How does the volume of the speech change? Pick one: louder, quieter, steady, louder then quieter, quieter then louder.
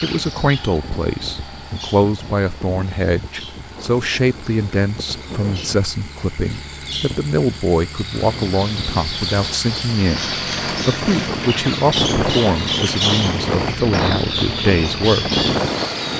steady.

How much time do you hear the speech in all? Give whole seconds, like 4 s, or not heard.
15 s.